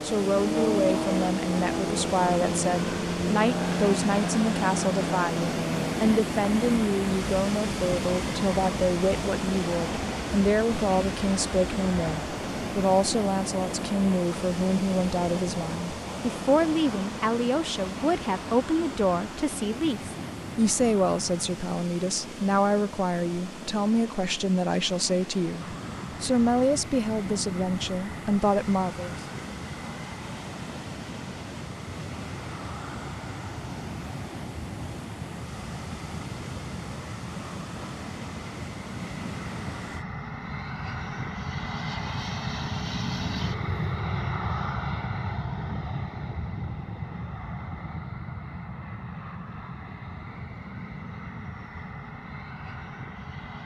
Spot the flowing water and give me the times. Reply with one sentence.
You can hear the flowing water from 0.0 to 40.0 s.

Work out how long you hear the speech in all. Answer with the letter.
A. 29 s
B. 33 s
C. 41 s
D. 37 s
A.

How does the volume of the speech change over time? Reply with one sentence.
The volume of the speech stays about the same.